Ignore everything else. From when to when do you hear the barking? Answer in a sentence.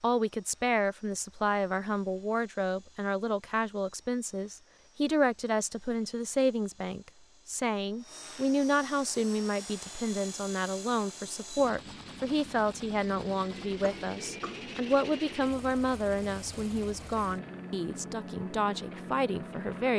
The barking can't be heard in this clip.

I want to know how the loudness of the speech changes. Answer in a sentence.
The loudness of the speech stays about the same.